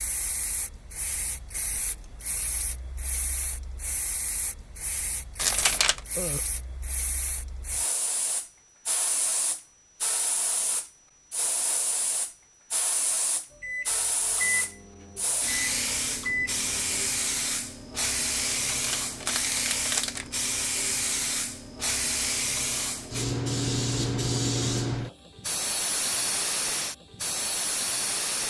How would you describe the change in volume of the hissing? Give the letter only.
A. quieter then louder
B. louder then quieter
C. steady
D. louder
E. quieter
D.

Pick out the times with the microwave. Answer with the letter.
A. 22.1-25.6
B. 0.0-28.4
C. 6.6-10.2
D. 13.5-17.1
D.